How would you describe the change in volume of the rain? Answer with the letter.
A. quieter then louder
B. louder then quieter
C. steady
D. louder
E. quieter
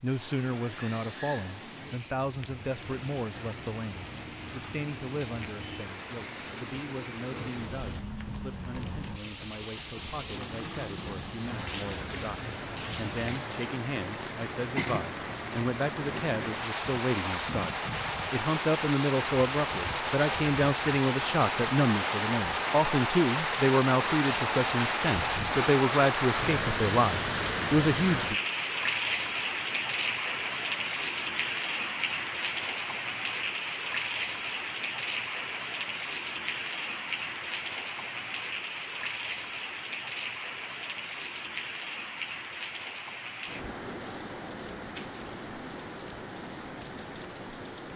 B.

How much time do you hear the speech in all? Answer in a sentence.
The speech can be heard for 28 seconds in total.